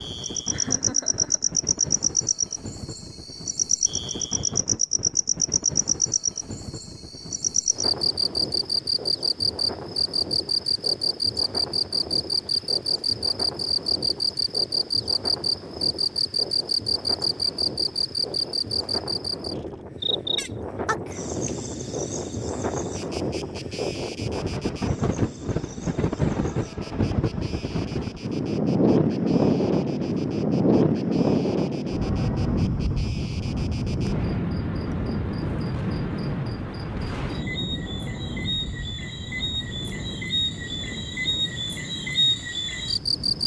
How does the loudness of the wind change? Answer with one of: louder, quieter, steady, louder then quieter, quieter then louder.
louder then quieter.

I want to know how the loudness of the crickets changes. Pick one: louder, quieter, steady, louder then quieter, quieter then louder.
quieter then louder.